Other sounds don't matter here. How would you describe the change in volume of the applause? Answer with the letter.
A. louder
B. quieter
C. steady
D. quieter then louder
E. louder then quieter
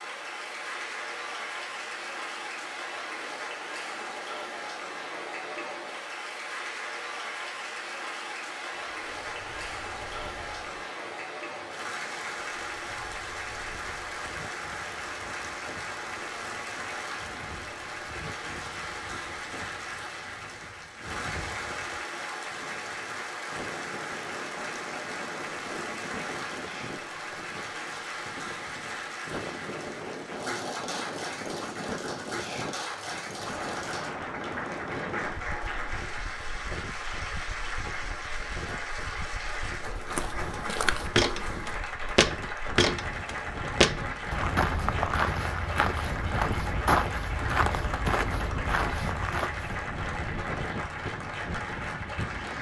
C.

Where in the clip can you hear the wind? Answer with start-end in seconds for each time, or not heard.
8.9-52.5.